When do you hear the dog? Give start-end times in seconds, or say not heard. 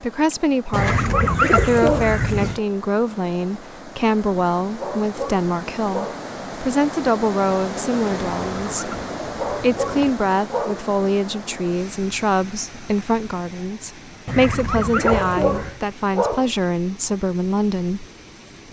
0.7-2.1, 4.8-6.2, 9.3-10.8, 15.0-16.5.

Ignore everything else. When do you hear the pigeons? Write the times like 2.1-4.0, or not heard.
0.7-2.6, 8.1-10.1, 14.2-15.8.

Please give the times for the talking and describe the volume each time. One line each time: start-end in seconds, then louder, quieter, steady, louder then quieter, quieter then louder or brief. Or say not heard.
0.0-18.1 steady.